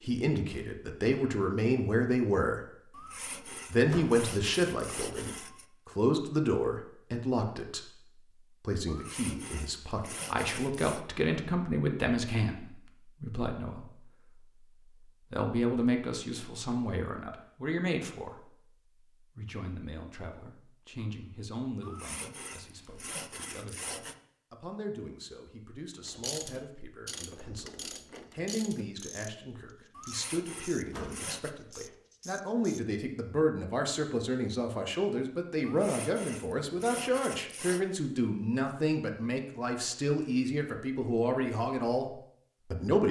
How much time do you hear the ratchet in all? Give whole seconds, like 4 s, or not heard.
7 s.